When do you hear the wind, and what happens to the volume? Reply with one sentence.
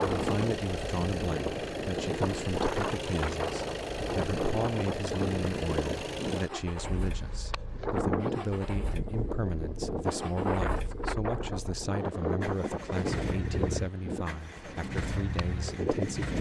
You can hear the wind from 0.0 to 16.3 s, at a steady volume.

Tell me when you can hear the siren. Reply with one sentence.
You can't hear the siren here.